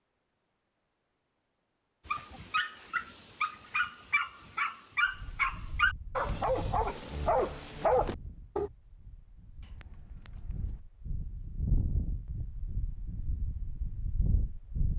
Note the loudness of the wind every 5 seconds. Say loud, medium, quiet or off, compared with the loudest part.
off, medium, loud.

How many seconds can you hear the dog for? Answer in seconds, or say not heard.
7 s.